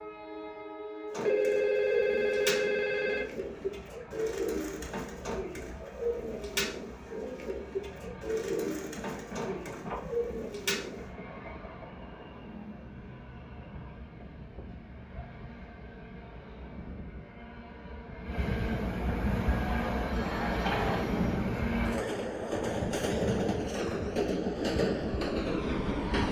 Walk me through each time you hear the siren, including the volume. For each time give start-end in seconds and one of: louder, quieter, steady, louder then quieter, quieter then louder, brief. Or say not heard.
not heard.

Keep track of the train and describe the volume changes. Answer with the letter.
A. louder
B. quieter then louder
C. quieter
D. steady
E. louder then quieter
A.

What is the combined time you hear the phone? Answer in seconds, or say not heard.
4 s.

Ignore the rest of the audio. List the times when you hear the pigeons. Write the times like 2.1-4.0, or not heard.
1.1-11.1.